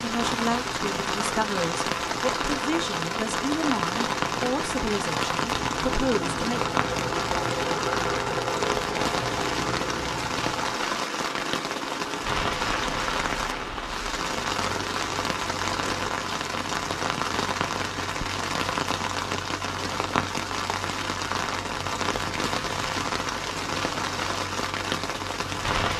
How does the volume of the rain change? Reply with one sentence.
The loudness of the rain stays about the same.